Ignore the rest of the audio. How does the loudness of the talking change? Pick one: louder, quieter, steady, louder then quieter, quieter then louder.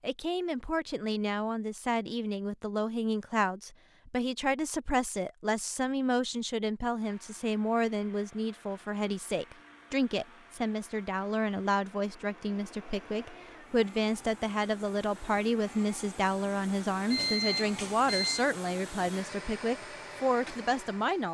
steady.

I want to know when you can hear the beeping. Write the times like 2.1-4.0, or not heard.
17.1-18.4.